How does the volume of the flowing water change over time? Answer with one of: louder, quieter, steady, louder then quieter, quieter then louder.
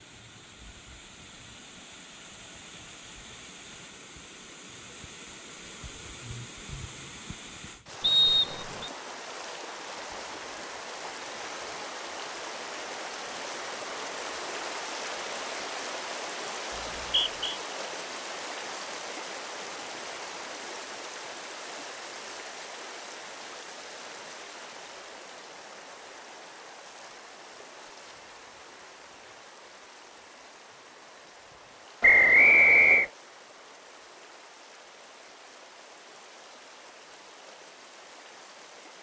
louder then quieter.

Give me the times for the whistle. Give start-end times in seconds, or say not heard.
8.0-8.9, 16.7-17.6, 32.0-33.0.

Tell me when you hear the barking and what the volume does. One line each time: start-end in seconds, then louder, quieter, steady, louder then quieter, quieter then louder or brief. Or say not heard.
not heard.